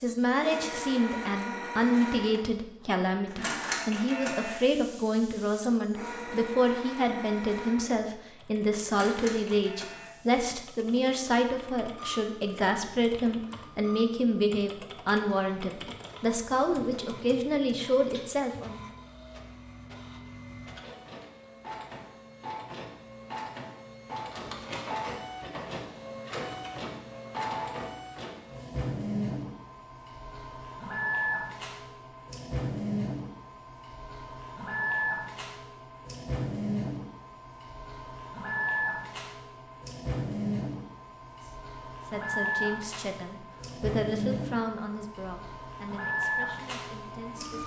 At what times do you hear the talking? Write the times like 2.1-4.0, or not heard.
0.0-18.9, 41.4-47.6.